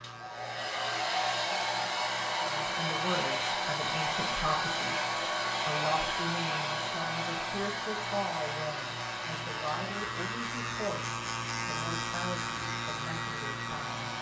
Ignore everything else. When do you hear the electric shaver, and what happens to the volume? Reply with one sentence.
The electric shaver can be heard from 0.0 to 14.1 s, getting louder.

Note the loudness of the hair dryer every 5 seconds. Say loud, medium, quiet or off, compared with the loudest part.
loud, loud, medium.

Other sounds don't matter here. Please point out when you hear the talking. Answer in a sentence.
You can hear the talking from 2.4 to 14.1 s.